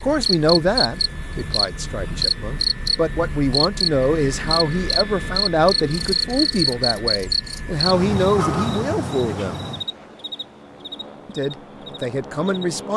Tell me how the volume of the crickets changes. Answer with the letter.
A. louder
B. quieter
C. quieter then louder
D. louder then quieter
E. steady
B.